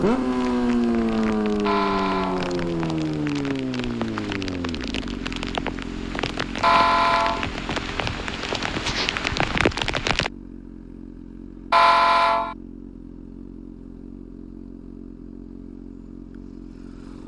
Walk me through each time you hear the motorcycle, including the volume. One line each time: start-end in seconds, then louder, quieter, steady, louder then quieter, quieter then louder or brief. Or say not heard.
0.0-17.2 quieter.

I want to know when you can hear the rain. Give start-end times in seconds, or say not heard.
0.2-10.3.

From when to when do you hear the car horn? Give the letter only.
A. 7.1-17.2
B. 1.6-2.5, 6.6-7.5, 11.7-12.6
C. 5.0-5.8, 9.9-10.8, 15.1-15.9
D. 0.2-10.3
B.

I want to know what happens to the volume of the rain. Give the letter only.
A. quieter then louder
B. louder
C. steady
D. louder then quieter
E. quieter
B.